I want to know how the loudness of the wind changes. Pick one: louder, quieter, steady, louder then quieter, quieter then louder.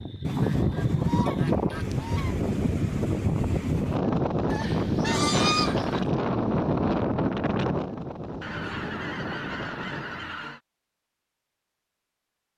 quieter.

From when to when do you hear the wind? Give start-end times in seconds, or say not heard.
0.0-10.4.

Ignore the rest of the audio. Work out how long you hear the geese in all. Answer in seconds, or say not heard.
6 s.